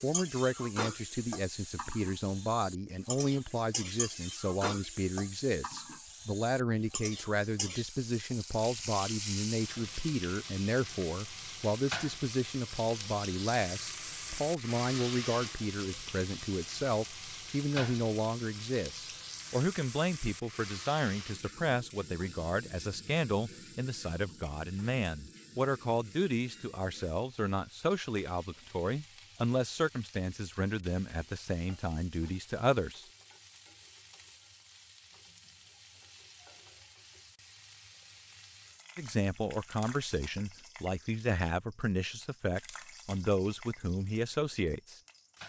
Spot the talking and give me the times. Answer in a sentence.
The talking can be heard from 0.0 to 33.0 s and from 39.0 to 45.0 s.